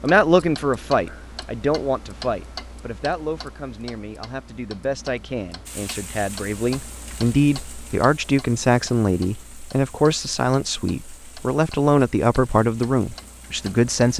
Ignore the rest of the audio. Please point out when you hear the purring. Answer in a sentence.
You can't hear the purring here.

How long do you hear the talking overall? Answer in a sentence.
The talking can be heard for 14 seconds in total.